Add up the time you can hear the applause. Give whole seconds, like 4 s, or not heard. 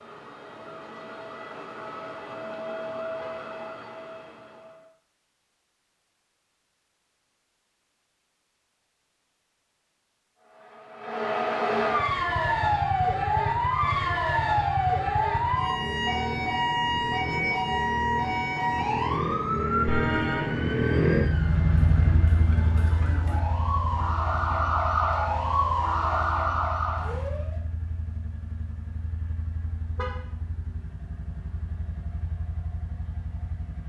not heard.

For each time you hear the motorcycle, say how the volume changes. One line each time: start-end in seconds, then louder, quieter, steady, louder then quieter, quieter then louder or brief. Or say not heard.
11.8-33.8 louder then quieter.